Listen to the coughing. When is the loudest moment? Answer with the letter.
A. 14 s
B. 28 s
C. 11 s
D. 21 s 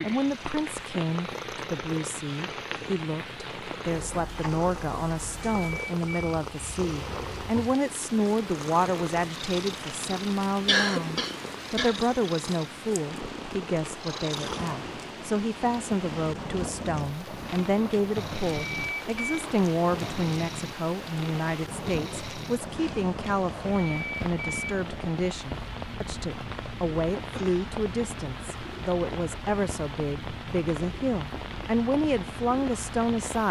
C.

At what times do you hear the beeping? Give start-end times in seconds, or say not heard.
5.4-6.4, 18.5-19.4, 23.7-24.8.